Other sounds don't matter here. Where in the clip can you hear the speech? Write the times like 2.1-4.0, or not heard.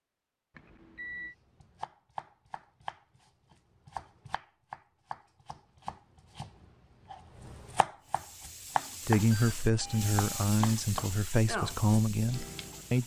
9.1-13.0.